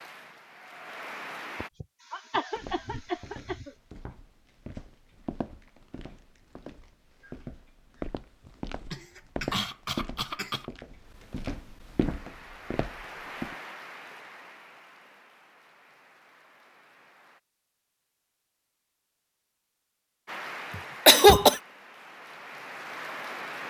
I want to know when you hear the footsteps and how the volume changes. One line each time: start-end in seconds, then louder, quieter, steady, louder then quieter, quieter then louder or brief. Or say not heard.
2.5-13.6 louder.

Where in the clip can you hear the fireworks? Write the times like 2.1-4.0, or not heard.
not heard.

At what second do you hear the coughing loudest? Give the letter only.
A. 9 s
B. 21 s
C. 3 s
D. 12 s
B.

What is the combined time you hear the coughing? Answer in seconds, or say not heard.
5 s.